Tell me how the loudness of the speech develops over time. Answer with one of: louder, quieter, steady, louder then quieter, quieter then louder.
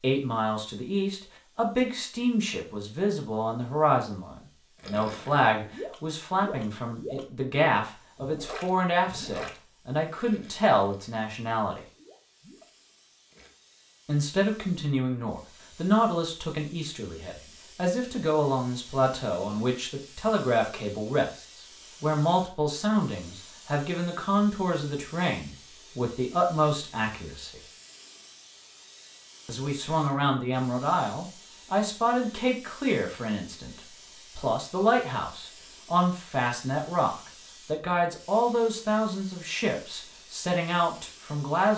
steady.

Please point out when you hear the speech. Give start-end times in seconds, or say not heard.
0.0-11.8, 14.1-27.6, 29.4-41.7.